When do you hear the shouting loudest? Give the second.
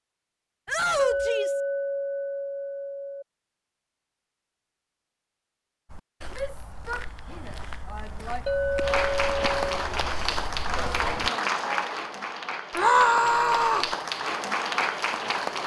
13 s.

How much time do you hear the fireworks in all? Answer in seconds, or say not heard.
not heard.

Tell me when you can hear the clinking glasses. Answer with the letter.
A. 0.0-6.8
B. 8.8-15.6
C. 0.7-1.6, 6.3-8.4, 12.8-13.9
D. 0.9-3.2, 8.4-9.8
D.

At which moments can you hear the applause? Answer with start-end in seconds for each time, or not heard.
8.8-15.6.